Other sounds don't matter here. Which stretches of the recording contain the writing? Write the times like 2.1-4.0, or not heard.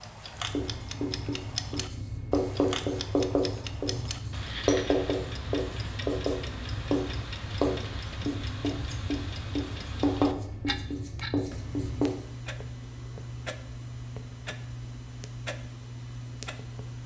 0.3-12.2.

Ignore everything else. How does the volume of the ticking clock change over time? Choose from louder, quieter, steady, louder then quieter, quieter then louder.
steady.